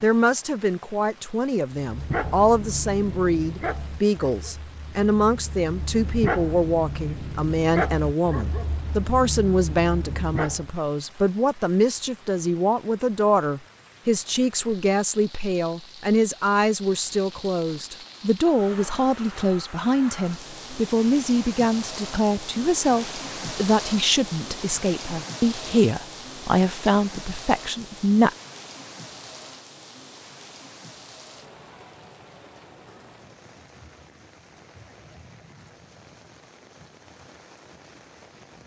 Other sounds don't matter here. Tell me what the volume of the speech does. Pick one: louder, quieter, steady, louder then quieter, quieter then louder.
steady.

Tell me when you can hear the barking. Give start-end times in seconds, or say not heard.
1.9-10.8.